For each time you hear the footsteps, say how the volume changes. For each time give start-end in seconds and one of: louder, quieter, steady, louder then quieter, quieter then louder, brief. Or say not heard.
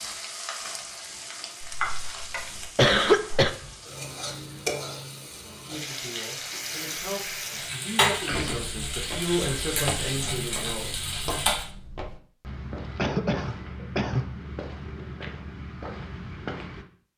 8.3-16.9 steady.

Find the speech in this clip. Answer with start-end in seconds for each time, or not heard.
5.7-10.9.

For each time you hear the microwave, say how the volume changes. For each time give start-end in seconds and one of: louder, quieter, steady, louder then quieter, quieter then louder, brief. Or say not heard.
not heard.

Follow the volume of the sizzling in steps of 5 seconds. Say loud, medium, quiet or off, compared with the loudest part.
medium, loud, loud, off.